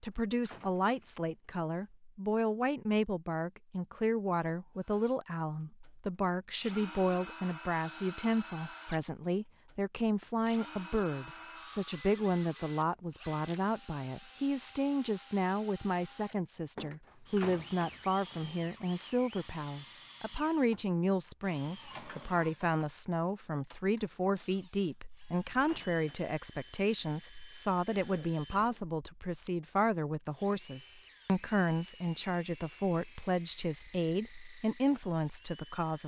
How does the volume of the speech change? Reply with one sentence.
The volume of the speech stays about the same.